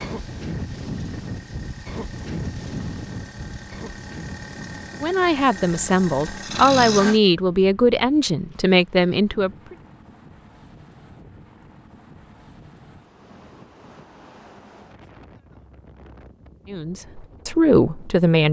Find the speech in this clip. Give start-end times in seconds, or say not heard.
5.0-9.8, 16.7-18.4.